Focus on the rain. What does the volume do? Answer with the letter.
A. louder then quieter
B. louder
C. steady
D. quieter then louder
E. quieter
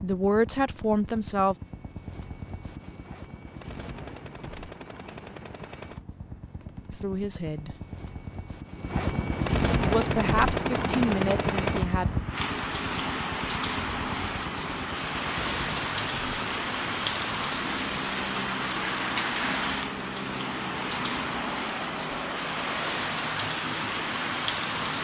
C.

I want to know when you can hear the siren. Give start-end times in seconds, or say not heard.
not heard.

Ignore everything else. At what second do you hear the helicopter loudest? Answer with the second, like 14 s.
10 s.